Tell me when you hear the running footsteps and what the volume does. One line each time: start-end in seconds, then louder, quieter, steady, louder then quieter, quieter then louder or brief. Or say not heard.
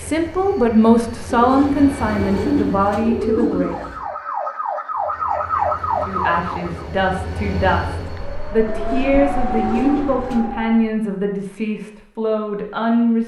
not heard.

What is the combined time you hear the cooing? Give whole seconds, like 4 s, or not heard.
5 s.